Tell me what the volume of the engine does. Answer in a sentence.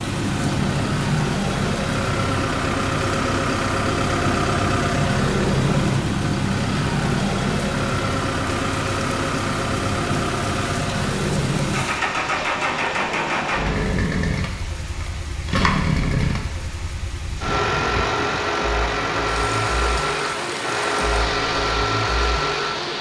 The loudness of the engine stays about the same.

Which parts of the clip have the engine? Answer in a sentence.
The engine can be heard from 0.0 to 22.9 s.